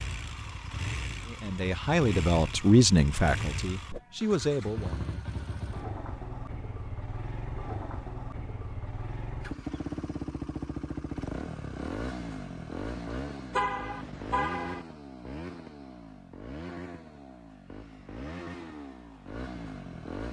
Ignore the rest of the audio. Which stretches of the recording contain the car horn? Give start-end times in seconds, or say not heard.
13.5-14.8.